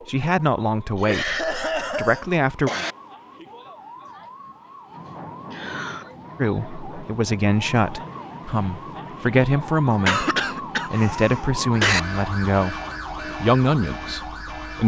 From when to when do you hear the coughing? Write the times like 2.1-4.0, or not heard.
0.9-3.0, 5.5-6.1, 10.1-12.0.